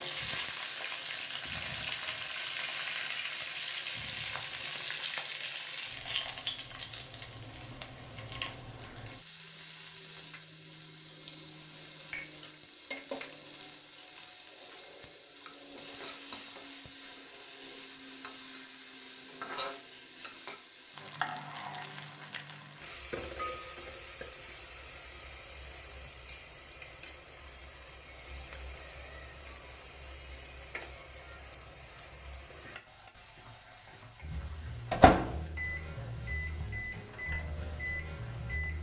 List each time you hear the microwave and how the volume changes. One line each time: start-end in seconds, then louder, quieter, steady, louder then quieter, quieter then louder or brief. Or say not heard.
34.2-38.7 quieter.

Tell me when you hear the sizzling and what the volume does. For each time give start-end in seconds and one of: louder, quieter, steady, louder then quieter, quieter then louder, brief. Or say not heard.
0.0-38.7 quieter.